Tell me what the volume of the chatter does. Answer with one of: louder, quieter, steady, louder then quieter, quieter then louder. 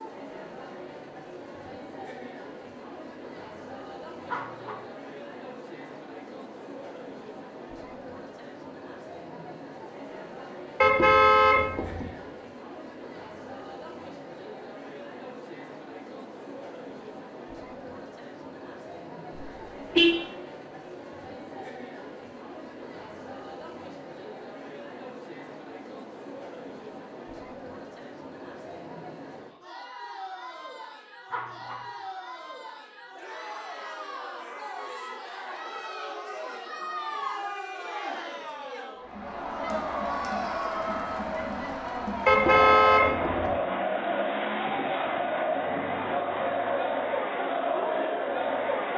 louder.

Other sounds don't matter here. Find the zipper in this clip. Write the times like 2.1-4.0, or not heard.
4.2-4.8, 31.3-31.9.